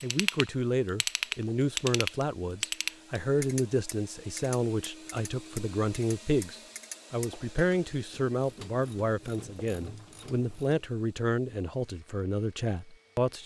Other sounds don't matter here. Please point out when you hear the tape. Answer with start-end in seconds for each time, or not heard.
not heard.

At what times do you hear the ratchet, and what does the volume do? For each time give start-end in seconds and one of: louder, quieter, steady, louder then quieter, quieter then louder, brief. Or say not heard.
0.0-10.8 quieter.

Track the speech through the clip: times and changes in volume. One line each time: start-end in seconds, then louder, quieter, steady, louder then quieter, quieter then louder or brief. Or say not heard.
0.0-13.4 steady.